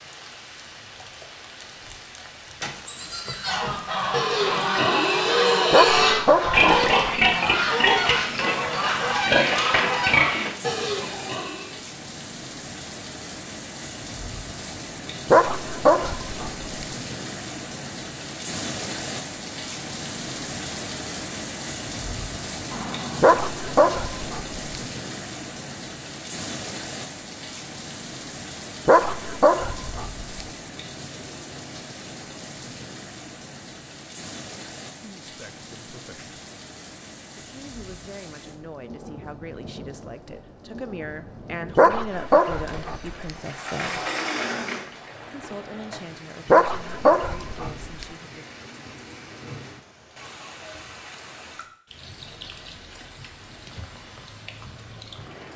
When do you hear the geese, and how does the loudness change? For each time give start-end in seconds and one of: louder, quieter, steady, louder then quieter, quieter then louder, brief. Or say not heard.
3.4-10.3 steady.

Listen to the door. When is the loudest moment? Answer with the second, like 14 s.
44 s.